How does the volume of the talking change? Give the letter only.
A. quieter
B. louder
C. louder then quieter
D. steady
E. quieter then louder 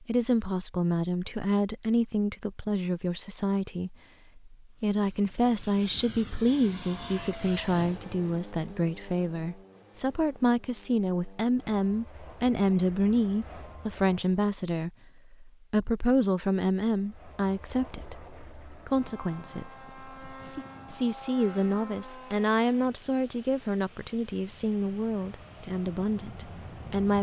D.